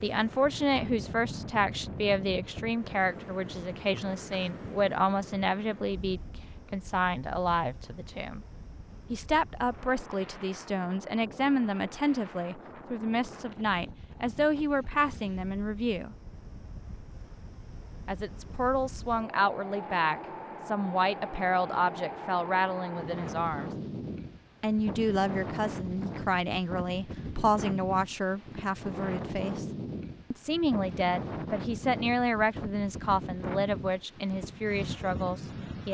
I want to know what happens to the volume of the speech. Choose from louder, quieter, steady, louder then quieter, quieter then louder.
steady.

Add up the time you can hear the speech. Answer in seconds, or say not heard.
32 s.